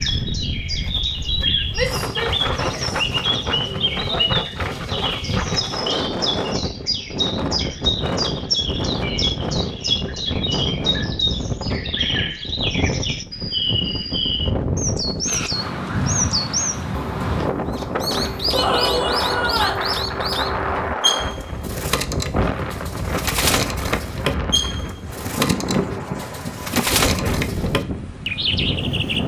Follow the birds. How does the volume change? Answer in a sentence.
The volume of the birds stays about the same.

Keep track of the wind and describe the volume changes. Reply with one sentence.
The volume of the wind stays about the same.